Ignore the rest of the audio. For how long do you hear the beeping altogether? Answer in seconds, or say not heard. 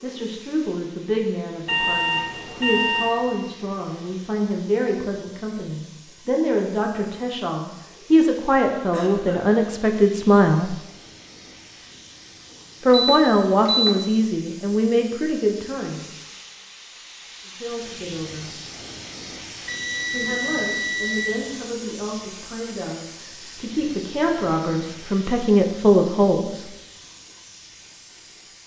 4 s.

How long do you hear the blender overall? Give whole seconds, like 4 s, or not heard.
not heard.